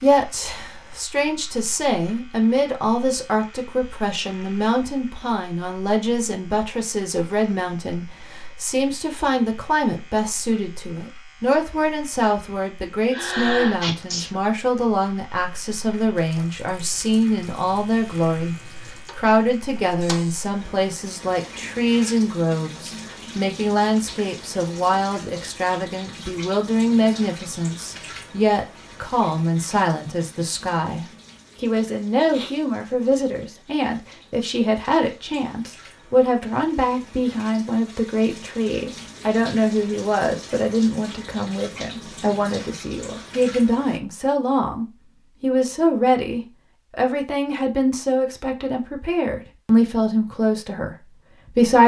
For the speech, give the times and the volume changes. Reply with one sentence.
The speech can be heard from 0.0 to 18.6 s, at a steady volume; and from 19.1 to 51.8 s, at a steady volume.